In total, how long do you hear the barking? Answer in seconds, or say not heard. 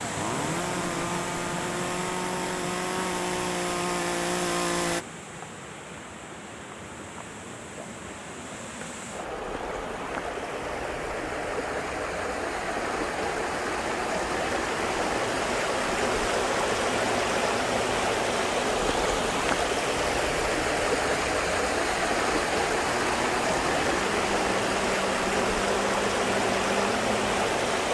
not heard.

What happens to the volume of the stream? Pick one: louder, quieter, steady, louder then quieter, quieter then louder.
louder.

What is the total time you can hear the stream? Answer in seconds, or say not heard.
28 s.